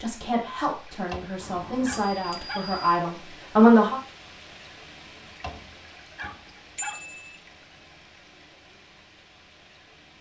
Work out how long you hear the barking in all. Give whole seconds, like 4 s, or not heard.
3 s.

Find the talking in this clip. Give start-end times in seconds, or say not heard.
0.0-4.0.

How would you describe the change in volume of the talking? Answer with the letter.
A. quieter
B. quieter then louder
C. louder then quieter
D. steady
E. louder
E.